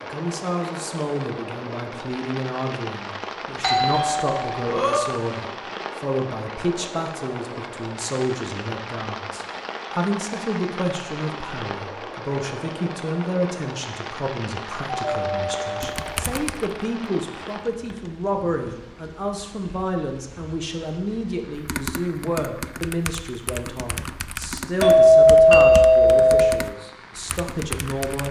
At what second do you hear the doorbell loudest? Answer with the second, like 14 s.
25 s.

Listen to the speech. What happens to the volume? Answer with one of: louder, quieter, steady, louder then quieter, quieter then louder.
steady.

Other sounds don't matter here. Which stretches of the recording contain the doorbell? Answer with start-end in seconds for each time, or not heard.
3.6-5.1, 15.1-16.2, 24.8-26.6.